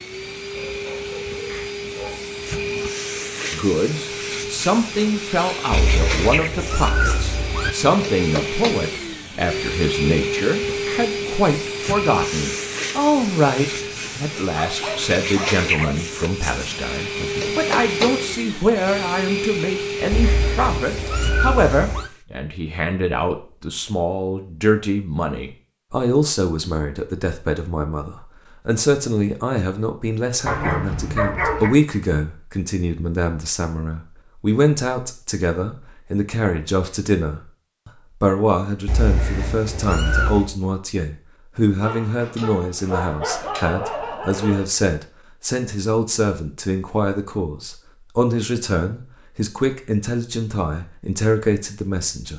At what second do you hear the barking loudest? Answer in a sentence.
The loudest moment of the barking is at 31 seconds.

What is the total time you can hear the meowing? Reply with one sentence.
The meowing can be heard for 6 seconds in total.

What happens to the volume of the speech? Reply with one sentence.
The volume of the speech stays about the same.